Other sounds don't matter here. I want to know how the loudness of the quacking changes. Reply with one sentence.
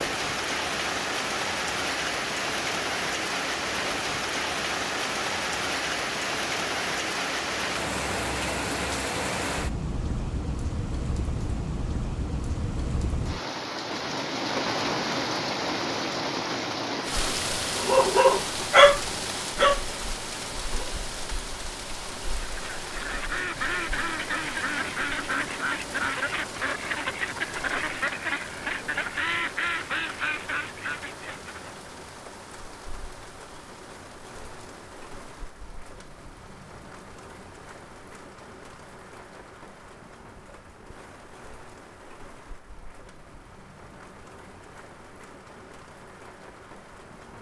The loudness of the quacking stays about the same.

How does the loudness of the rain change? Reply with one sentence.
The volume of the rain goes down.